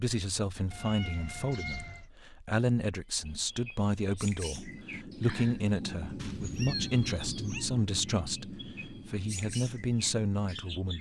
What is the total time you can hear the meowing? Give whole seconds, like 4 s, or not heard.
3 s.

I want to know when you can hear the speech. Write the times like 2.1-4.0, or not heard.
0.0-10.9.